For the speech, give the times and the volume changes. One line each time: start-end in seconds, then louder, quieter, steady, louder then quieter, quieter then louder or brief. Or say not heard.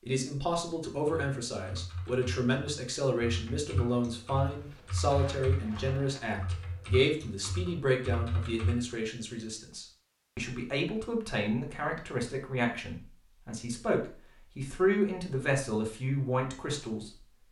0.1-17.1 steady.